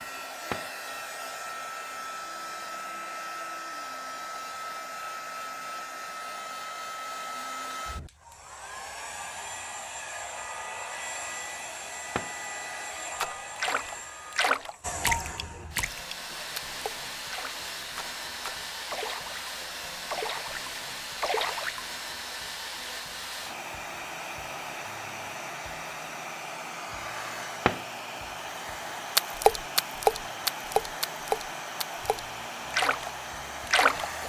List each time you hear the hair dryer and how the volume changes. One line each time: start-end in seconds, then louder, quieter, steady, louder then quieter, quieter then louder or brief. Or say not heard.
0.0-34.2 steady.